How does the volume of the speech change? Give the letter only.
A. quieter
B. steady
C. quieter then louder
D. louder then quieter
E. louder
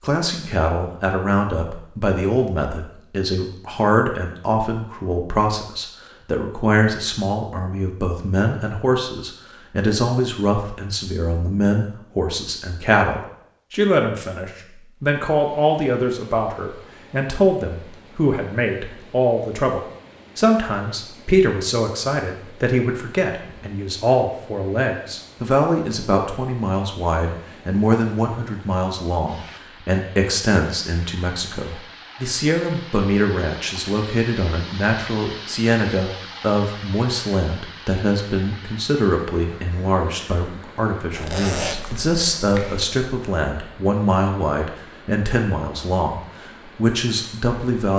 B.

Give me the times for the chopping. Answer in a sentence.
The chopping can't be heard in this clip.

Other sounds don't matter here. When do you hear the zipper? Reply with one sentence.
The zipper can be heard from 41.1 to 42.9 s.